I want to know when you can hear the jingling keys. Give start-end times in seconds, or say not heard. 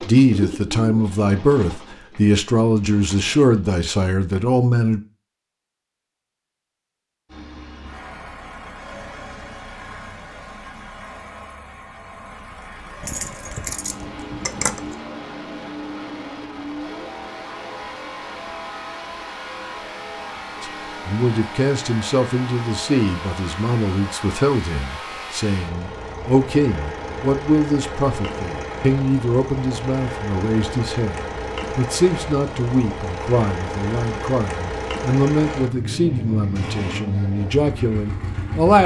13.0-15.1.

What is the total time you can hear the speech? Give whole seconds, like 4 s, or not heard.
23 s.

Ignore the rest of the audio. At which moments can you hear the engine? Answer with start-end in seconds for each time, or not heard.
7.2-38.8.